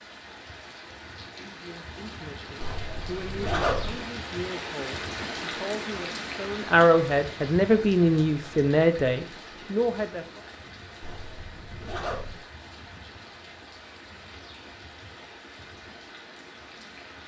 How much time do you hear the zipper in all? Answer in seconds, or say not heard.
3 s.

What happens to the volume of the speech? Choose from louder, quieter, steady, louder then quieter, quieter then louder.
louder.